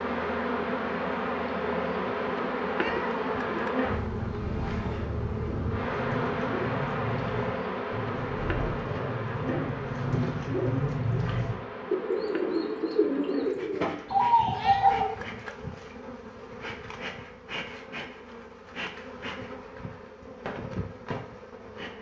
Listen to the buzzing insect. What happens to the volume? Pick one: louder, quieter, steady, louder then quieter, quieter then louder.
quieter.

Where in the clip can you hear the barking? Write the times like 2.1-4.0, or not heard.
not heard.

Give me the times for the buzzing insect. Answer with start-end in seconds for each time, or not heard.
0.0-21.9.